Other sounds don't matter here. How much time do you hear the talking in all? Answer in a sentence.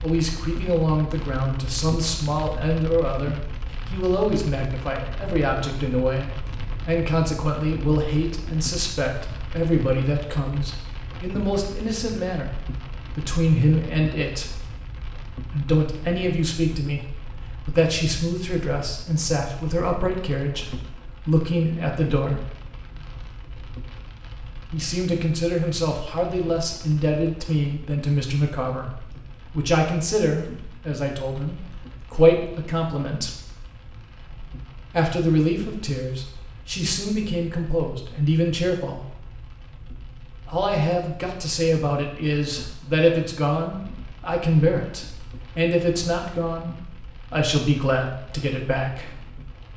You can hear the talking for 43 seconds altogether.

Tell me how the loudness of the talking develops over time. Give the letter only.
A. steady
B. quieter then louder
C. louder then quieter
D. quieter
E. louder
A.